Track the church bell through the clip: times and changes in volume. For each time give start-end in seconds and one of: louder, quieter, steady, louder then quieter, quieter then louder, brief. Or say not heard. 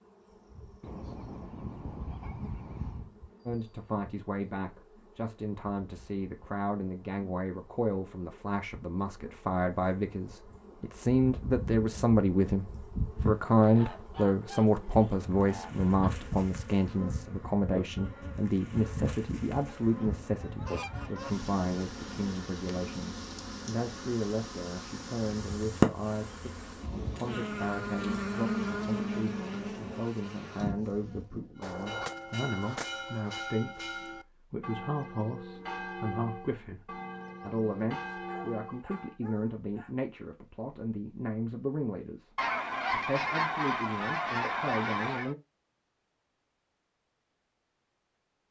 31.6-39.2 steady.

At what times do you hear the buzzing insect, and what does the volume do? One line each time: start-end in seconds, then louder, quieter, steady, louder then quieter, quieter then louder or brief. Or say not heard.
0.0-31.6 louder.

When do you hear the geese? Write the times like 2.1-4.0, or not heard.
0.8-3.1, 13.2-16.1, 19.8-21.3, 31.6-33.4, 42.4-45.4.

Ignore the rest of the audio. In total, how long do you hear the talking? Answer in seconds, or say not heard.
42 s.